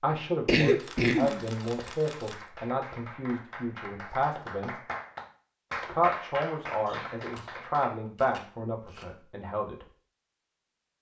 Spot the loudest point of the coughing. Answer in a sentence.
The loudest moment of the coughing is at 1 second.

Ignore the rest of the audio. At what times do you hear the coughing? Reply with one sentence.
The coughing can be heard from 0.5 to 1.8 s and from 6.8 to 7.7 s.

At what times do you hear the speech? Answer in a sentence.
You can hear the speech from 0.0 to 4.8 s and from 5.8 to 9.8 s.